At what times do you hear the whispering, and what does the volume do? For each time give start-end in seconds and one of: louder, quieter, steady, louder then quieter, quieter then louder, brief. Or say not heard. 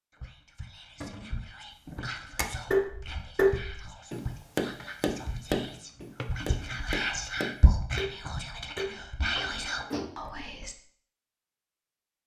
0.1-10.8 louder.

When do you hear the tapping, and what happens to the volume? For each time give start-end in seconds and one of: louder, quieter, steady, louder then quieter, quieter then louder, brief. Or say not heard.
1.9-10.1 quieter.